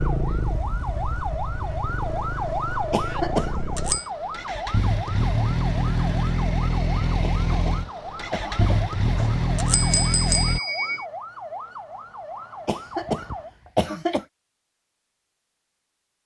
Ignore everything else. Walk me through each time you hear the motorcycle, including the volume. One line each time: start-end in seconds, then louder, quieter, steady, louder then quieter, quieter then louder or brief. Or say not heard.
0.0-10.6 louder.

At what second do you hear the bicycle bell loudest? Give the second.
10 s.